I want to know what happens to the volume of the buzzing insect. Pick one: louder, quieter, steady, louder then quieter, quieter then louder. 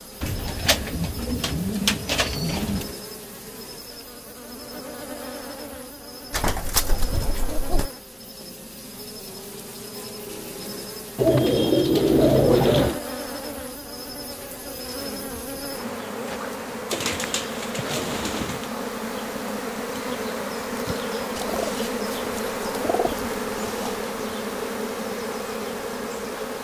louder.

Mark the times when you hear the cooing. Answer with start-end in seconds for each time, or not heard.
0.2-2.9, 6.3-7.9, 11.2-13.0, 16.9-18.6, 21.4-24.1.